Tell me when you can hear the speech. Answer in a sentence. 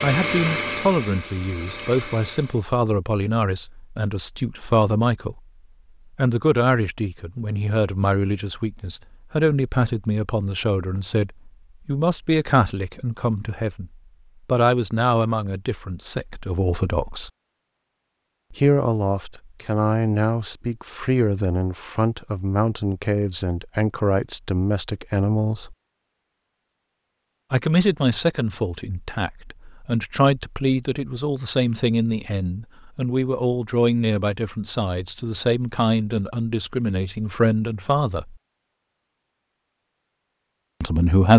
The speech can be heard from 0.0 to 5.4 s, from 6.2 to 17.3 s, from 18.5 to 25.8 s, from 27.5 to 38.4 s and from 40.8 to 41.3 s.